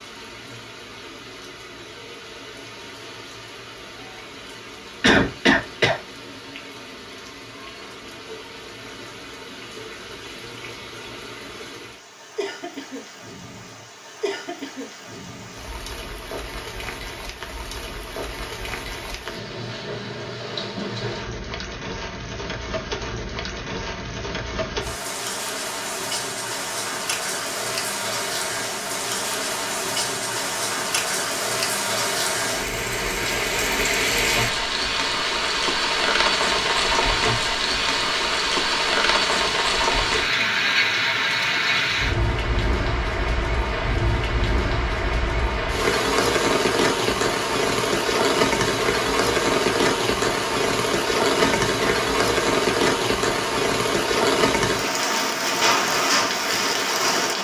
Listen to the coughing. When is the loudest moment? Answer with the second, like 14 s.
5 s.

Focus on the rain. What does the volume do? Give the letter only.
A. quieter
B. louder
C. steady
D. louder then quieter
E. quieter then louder
B.